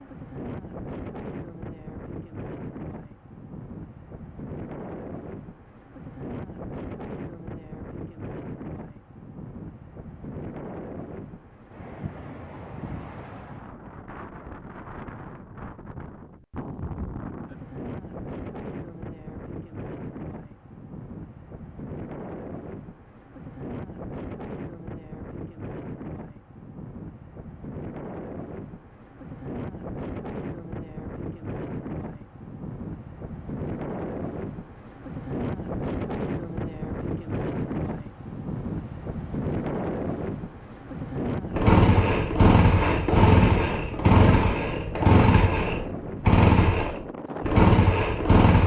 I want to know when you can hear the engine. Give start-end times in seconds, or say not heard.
41.5-48.6.